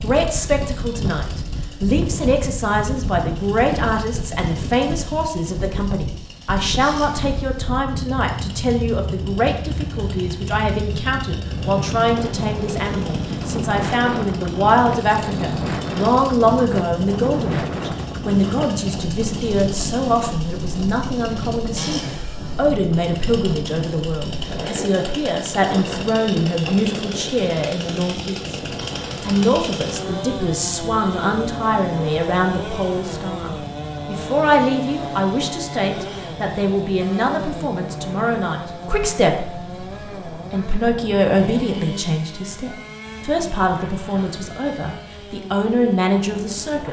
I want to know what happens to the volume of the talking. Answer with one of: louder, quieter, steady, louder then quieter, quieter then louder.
steady.